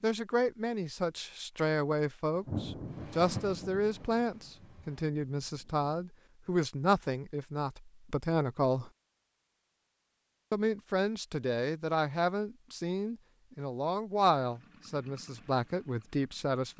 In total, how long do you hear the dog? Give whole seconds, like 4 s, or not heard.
not heard.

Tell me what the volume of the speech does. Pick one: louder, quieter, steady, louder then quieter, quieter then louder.
steady.